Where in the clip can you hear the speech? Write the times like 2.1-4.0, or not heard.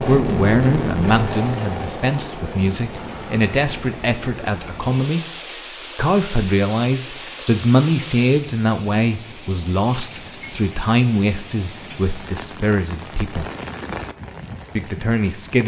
0.1-5.2, 6.0-13.5, 14.8-15.6.